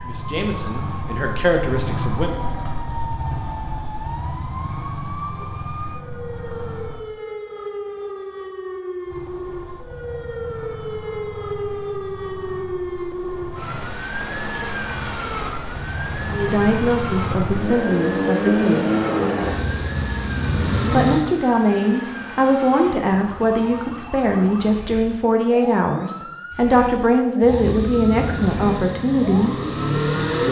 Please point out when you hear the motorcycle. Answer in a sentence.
You can hear the motorcycle from 0.0 to 7.0 s, from 9.1 to 21.2 s and from 27.4 to 30.4 s.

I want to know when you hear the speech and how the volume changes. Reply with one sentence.
You can hear the speech briefly from 0.0 to 2.4 s; briefly from 16.3 to 19.0 s; and from 20.9 to 29.6 s, at a steady volume.